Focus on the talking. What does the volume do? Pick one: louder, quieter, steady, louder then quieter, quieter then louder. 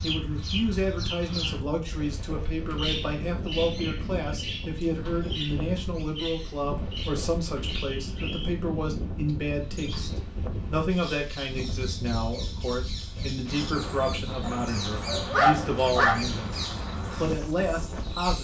steady.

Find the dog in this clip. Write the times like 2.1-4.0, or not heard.
14.4-16.3.